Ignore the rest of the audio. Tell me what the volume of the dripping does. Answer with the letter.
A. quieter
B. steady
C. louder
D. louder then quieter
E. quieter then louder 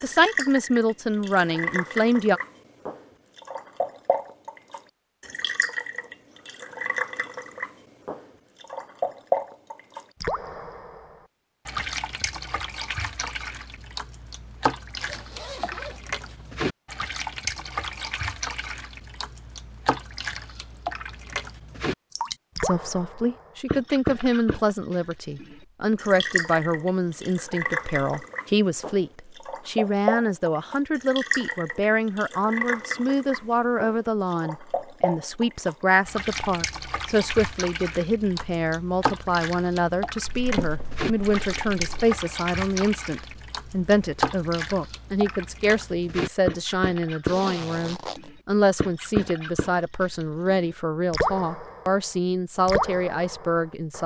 B.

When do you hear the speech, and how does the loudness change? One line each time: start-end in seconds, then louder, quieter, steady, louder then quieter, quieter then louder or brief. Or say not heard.
0.0-2.4 brief
22.6-54.0 steady.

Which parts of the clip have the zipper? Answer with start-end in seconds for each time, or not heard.
14.9-16.5, 47.2-48.3.